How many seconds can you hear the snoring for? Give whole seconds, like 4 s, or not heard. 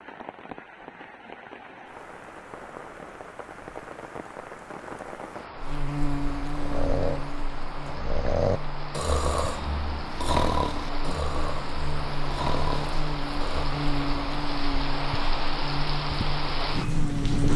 7 s.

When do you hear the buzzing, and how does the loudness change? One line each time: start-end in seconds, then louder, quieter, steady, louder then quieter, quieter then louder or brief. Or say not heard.
5.5-17.5 quieter then louder.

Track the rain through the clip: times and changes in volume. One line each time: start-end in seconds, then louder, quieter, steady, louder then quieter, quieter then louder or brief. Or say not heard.
0.0-17.5 louder.